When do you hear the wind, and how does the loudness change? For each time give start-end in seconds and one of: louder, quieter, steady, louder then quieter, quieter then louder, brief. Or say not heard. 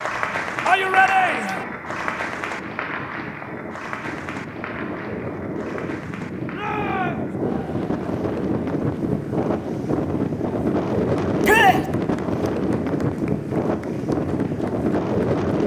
0.0-15.6 louder.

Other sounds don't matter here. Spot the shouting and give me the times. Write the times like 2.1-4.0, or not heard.
0.7-1.6, 6.5-7.3, 11.4-11.8.